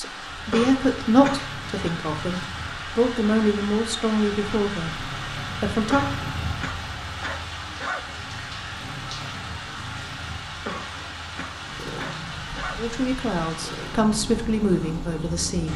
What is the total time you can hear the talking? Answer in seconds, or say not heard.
9 s.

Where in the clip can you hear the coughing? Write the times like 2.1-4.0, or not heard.
0.5-1.9, 5.9-8.1, 10.7-12.8.